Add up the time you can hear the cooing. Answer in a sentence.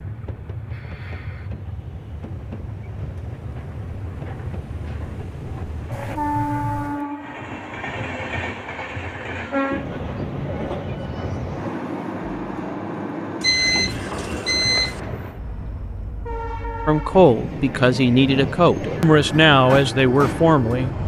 You can't hear the cooing here.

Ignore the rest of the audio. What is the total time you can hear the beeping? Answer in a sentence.
You can hear the beeping for 3 seconds altogether.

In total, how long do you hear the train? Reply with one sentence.
You can hear the train for 21 seconds altogether.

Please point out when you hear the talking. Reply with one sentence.
You can hear the talking from 16.9 to 21.0 s.